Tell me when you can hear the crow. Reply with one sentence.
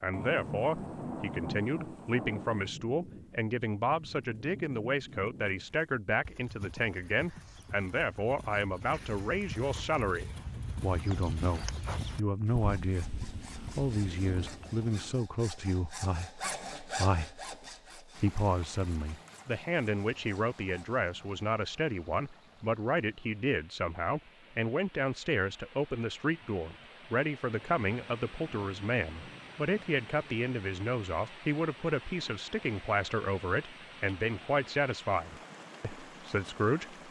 The crow can't be heard in this clip.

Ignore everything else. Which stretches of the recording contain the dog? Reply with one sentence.
The dog can't be heard in this clip.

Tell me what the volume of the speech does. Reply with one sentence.
The loudness of the speech stays about the same.